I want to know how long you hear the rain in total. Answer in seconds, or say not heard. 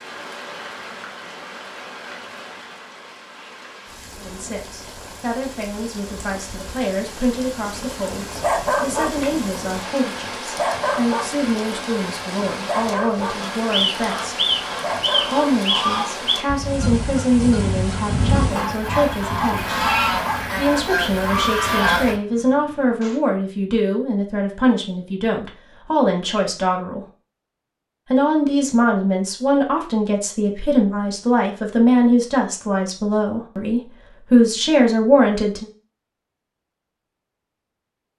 23 s.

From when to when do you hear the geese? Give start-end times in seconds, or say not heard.
13.4-22.1.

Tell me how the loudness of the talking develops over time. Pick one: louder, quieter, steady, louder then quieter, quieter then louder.
louder.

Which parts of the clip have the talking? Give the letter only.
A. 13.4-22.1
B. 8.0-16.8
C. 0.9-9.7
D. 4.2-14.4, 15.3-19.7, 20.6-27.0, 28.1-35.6
D.